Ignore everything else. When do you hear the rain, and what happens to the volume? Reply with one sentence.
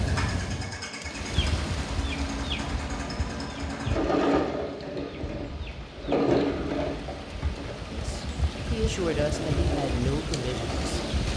You can hear the rain from 0.0 to 11.3 s, getting quieter then louder.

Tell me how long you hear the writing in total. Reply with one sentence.
The writing can't be heard in this clip.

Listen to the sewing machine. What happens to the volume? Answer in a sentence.
The volume of the sewing machine goes up, then down.